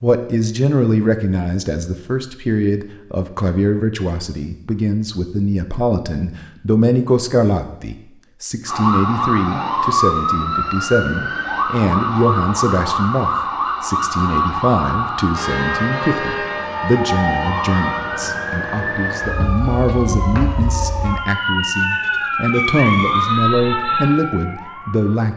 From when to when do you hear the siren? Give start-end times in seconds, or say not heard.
8.7-25.3.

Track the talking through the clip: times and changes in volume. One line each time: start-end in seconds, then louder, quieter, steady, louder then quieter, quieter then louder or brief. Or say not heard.
0.0-25.3 steady.